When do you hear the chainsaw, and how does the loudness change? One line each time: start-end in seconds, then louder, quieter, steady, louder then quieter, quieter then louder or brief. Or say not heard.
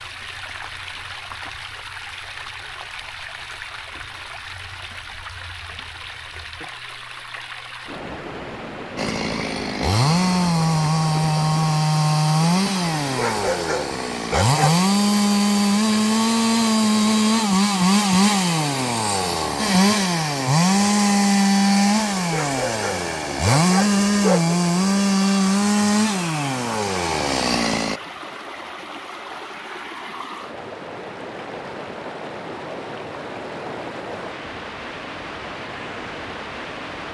8.9-28.0 steady.